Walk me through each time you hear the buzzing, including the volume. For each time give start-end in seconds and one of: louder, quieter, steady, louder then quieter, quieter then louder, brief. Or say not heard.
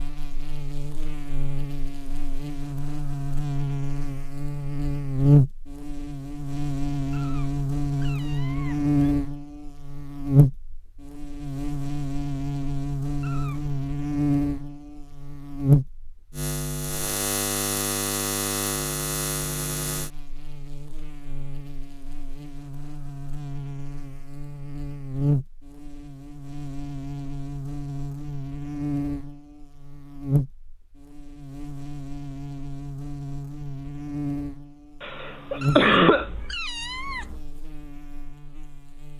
0.0-39.1 quieter.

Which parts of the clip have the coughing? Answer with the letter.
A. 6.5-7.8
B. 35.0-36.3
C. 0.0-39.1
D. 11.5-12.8
B.